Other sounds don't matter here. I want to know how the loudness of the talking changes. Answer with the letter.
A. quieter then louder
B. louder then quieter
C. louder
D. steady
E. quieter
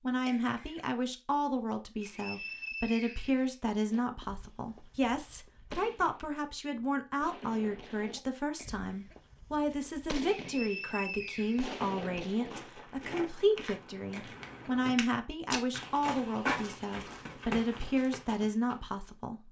D.